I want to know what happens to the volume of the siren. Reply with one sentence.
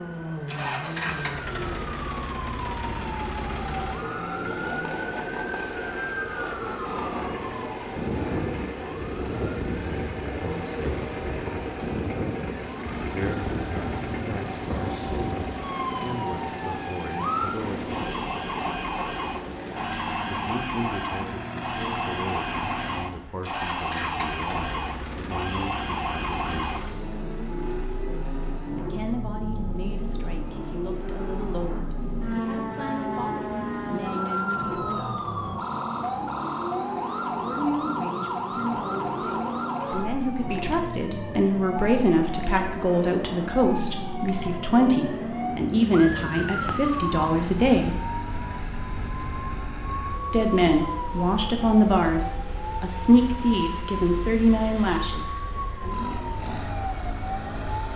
The volume of the siren stays about the same.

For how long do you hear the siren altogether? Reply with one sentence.
You can hear the siren for 58 seconds altogether.